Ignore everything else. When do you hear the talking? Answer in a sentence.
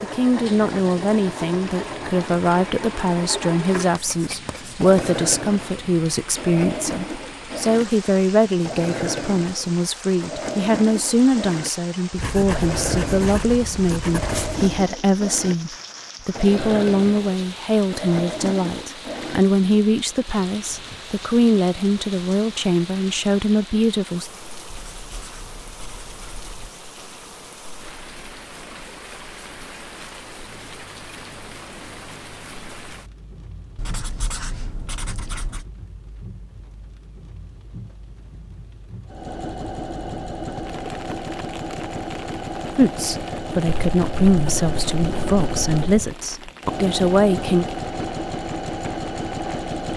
The talking can be heard from 0.0 to 24.3 s and from 42.8 to 47.6 s.